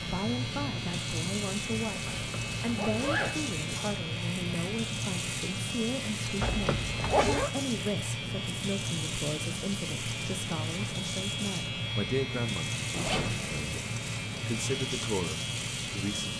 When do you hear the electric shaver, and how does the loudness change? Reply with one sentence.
The electric shaver can be heard from 0.0 to 16.3 s, at a steady volume.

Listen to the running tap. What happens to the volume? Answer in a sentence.
The loudness of the running tap stays about the same.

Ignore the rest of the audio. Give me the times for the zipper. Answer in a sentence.
You can hear the zipper from 2.0 to 3.3 s, from 6.4 to 7.5 s and from 12.9 to 13.8 s.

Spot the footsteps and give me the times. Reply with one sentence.
You can't hear the footsteps here.